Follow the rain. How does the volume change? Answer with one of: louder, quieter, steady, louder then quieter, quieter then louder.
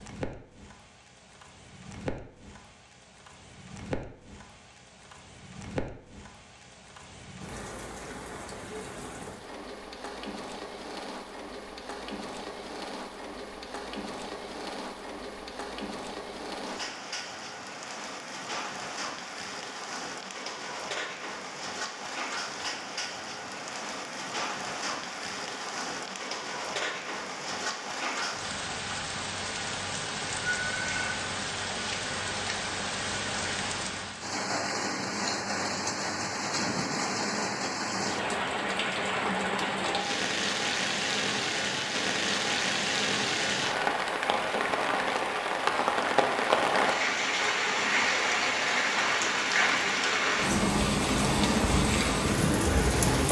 louder.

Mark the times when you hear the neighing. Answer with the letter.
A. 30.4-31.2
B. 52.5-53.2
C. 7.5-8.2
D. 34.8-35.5
A.